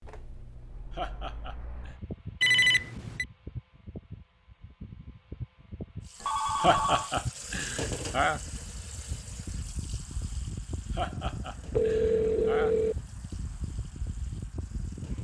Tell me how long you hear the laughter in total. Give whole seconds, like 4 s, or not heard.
5 s.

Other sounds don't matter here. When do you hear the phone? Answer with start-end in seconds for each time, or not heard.
2.4-3.2, 6.2-7.1, 11.8-12.9.